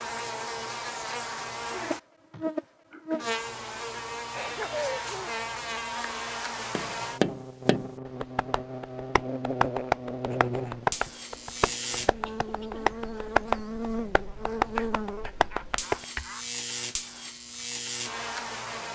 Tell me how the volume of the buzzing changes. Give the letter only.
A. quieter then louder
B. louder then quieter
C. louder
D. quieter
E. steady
E.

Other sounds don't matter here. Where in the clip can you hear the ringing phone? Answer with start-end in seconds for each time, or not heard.
not heard.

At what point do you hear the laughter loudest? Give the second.
5 s.